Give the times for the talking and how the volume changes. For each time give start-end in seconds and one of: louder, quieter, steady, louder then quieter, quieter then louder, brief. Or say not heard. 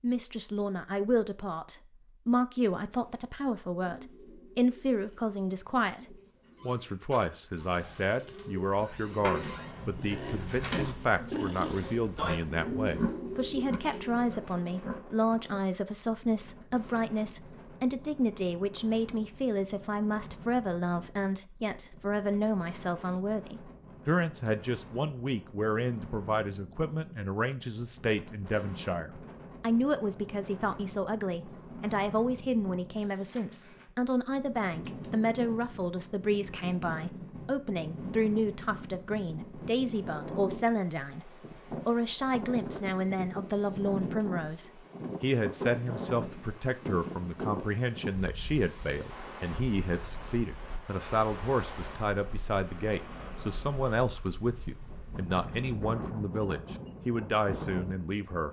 0.0-58.4 steady.